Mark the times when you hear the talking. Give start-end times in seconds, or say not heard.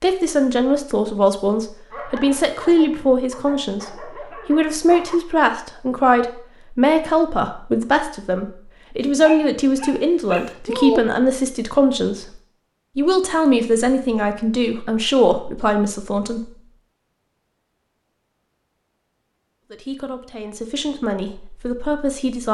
0.0-3.9, 4.5-12.2, 12.9-16.4, 19.7-22.4.